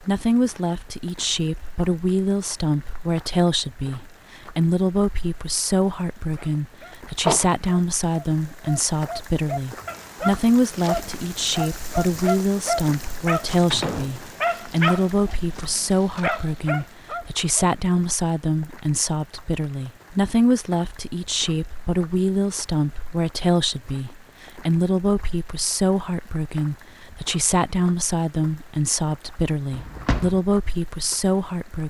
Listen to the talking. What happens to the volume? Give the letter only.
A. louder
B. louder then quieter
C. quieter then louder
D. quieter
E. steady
E.